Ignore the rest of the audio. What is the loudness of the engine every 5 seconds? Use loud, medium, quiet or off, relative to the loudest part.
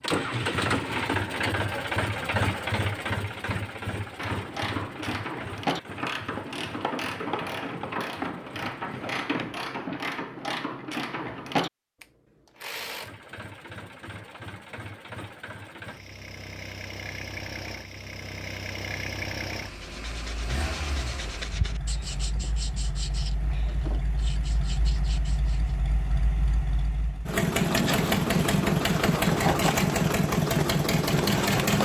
medium, quiet, quiet, quiet, quiet, loud, loud.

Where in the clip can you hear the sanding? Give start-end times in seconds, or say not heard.
19.7-25.8.